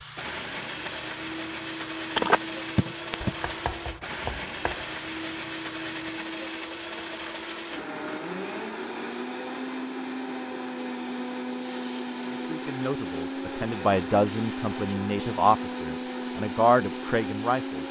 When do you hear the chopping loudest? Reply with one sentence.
The loudest moment of the chopping is at 4 seconds.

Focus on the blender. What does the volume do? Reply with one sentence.
The volume of the blender stays about the same.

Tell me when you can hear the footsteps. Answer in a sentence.
The footsteps can't be heard in this clip.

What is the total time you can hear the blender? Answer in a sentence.
You can hear the blender for 18 seconds altogether.